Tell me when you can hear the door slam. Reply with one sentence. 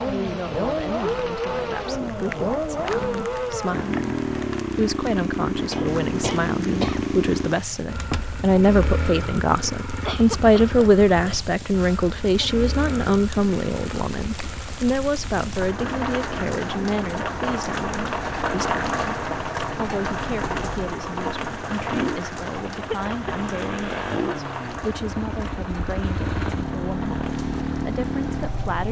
The door slam can be heard from 8.0 to 8.4 s.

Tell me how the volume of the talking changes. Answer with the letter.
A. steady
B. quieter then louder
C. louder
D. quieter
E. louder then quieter
E.